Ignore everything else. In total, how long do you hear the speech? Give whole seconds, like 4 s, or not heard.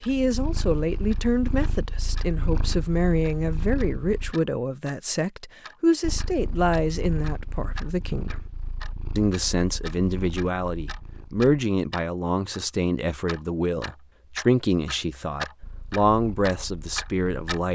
17 s.